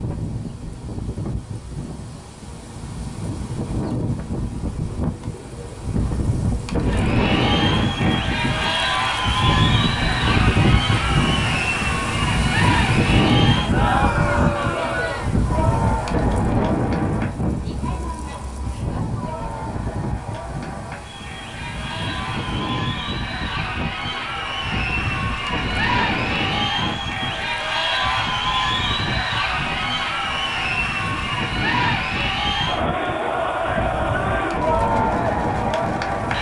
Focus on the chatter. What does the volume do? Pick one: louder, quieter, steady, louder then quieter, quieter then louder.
quieter then louder.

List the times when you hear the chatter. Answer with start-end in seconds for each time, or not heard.
6.8-36.3.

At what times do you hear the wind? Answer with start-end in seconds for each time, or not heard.
0.0-36.3.